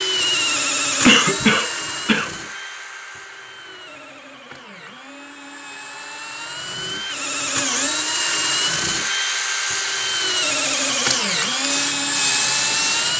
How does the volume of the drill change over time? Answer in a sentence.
The loudness of the drill goes down, then up.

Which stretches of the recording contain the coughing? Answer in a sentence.
The coughing can be heard from 1.1 to 2.3 s.